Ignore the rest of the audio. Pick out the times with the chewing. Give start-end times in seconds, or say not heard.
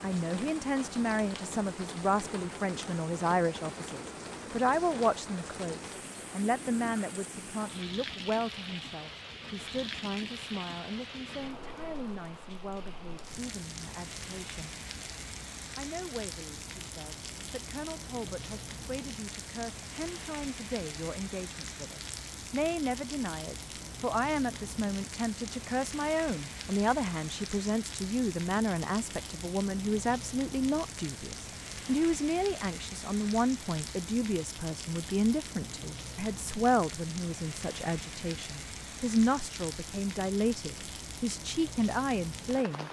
not heard.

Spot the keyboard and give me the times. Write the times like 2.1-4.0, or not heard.
not heard.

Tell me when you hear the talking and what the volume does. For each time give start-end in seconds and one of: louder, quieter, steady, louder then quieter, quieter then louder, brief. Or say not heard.
0.0-14.8 quieter
15.8-42.8 louder.